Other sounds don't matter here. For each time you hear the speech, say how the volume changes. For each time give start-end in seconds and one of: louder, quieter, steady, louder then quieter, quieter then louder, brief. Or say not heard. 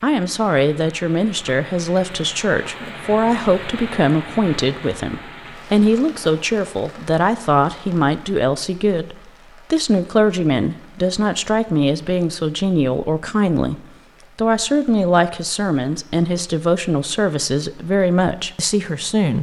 0.0-19.3 steady.